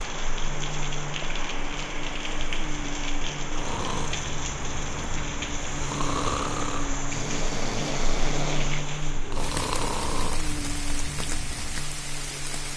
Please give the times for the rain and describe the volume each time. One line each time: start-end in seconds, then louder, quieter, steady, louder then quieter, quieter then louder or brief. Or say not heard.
0.0-12.7 steady.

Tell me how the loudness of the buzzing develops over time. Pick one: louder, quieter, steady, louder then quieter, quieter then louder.
steady.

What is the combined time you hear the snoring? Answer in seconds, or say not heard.
8 s.